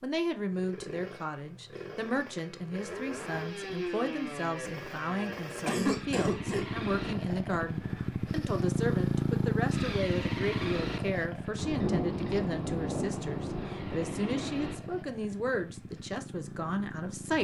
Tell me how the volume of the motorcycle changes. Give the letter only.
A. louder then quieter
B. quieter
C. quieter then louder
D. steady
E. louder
A.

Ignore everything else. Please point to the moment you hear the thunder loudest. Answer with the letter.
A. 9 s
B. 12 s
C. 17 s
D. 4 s
B.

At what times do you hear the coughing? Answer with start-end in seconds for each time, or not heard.
5.7-6.7.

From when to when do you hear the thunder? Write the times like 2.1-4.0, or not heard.
11.6-14.8.